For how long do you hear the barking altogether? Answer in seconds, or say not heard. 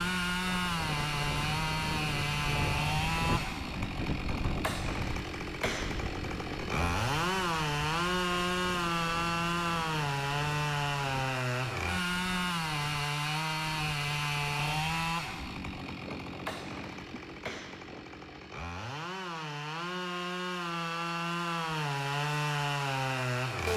not heard.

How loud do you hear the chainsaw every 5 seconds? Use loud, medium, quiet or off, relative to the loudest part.
loud, loud, loud, medium, loud.